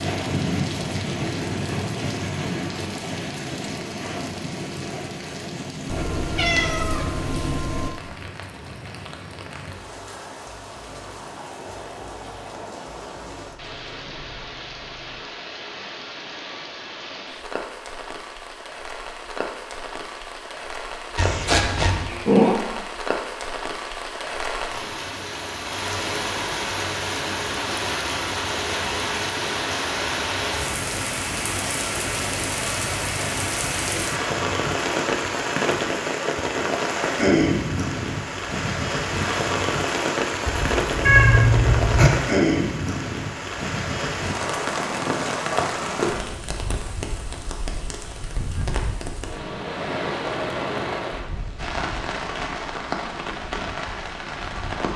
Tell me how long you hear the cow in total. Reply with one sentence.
You can't hear the cow here.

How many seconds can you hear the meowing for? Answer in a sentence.
The meowing can be heard for 5 seconds in total.